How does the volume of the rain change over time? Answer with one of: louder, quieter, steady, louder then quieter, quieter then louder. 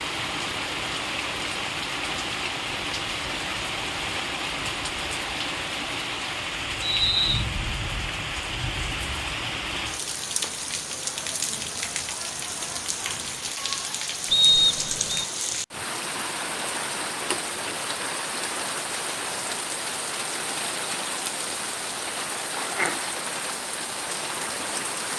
steady.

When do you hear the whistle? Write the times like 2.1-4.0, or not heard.
6.8-7.5, 14.3-15.2.